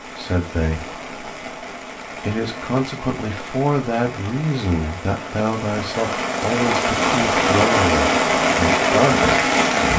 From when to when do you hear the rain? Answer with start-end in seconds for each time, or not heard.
0.0-9.9.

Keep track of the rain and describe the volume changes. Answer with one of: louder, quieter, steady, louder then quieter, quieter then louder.
louder.